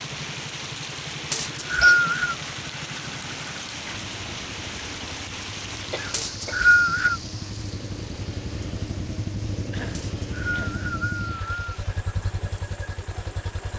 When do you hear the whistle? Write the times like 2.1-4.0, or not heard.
1.3-2.4, 6.1-7.2, 9.9-11.7.